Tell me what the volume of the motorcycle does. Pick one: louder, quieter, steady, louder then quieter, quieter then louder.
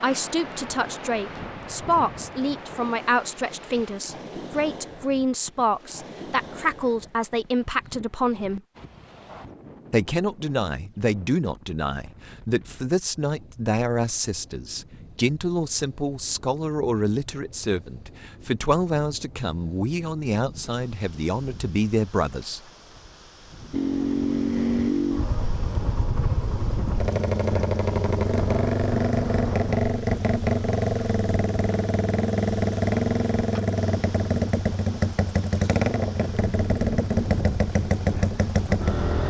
steady.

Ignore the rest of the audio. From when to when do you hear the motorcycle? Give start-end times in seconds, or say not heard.
23.7-39.2.